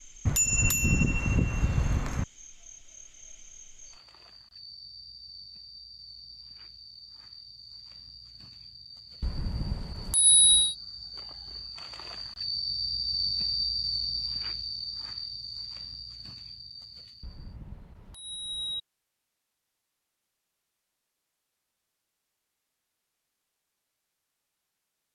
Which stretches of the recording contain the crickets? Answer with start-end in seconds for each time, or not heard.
0.0-17.6.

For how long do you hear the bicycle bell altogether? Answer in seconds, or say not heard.
5 s.